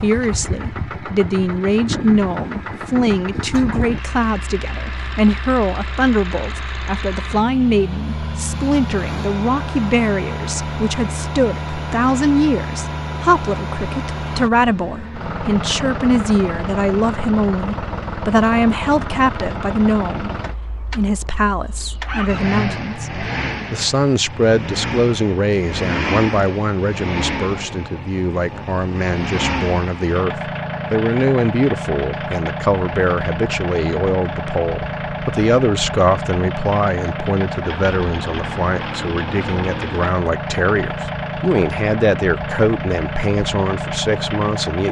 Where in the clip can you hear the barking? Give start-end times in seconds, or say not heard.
not heard.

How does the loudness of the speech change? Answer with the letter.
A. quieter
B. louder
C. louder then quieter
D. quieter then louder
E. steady
E.